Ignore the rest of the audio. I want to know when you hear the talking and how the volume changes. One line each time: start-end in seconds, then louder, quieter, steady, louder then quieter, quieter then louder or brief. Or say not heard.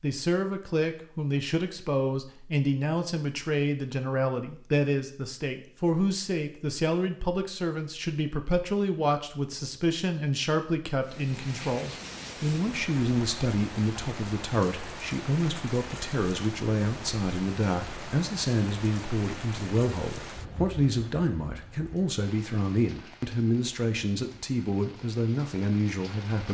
0.0-26.4 steady.